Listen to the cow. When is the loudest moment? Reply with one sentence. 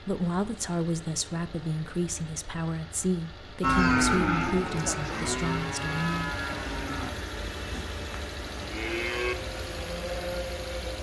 The loudest moment of the cow is at 4 seconds.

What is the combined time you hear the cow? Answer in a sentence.
You can hear the cow for 7 seconds altogether.